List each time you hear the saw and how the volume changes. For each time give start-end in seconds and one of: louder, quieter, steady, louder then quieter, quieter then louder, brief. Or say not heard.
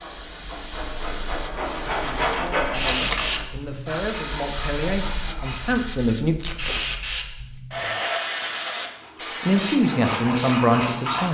0.0-6.0 louder then quieter
8.8-11.3 brief.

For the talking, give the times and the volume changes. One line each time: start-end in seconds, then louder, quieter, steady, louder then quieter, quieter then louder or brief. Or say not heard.
2.0-6.3 louder
9.4-11.3 brief.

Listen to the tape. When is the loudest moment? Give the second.
3 s.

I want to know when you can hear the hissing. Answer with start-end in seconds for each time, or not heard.
0.0-11.3.